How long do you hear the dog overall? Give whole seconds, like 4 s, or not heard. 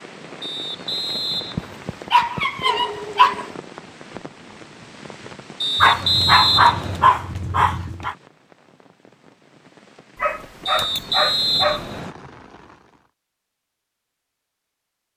6 s.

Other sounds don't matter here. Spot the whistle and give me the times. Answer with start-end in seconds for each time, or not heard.
0.4-1.8, 5.6-7.1, 10.7-12.2.